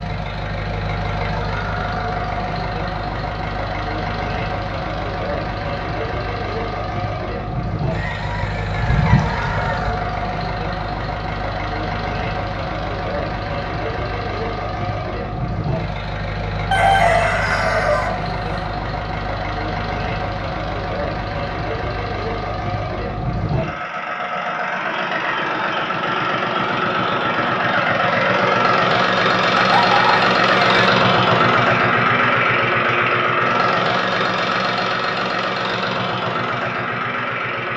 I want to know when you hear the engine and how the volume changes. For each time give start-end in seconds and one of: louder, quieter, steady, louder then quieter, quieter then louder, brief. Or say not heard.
0.0-37.7 louder.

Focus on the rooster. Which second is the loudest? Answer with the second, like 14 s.
17 s.